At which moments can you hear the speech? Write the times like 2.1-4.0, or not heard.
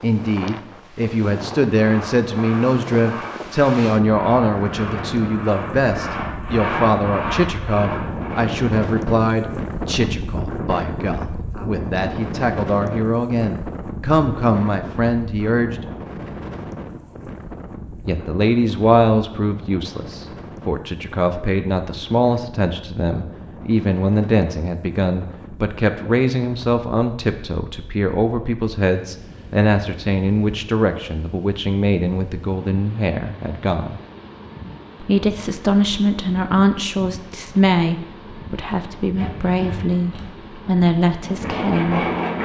0.0-15.8, 18.1-34.0, 35.0-42.0.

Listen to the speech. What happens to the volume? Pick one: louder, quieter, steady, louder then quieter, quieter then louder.
steady.